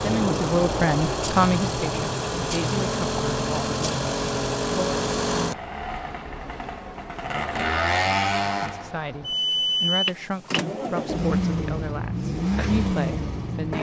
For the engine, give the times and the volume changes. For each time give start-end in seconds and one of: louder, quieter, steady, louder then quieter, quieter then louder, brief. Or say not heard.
0.0-13.7 steady.